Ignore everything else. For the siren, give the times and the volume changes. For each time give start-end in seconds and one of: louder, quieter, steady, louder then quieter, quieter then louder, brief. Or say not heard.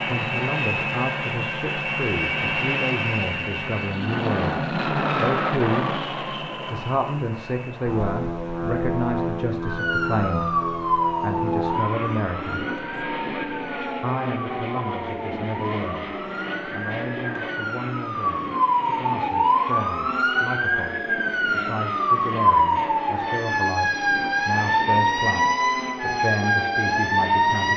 9.6-27.7 quieter then louder.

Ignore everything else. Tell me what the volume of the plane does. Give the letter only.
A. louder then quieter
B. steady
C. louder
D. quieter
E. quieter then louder
D.